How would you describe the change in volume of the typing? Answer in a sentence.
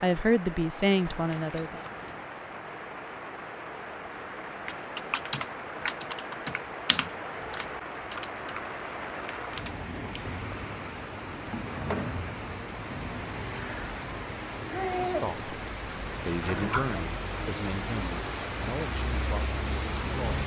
The volume of the typing goes down.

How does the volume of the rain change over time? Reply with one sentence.
The volume of the rain goes up.